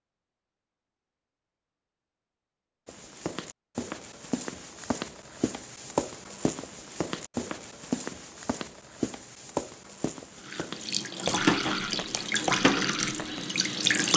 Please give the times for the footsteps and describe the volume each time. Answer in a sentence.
The footsteps can be heard from 2.9 to 13.5 s, at a steady volume.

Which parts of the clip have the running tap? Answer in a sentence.
You can hear the running tap from 10.4 to 14.1 s.